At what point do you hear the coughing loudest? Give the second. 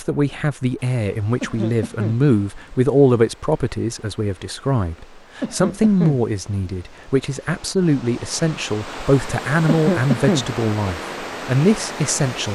10 s.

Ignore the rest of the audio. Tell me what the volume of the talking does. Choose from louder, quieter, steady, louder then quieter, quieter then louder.
steady.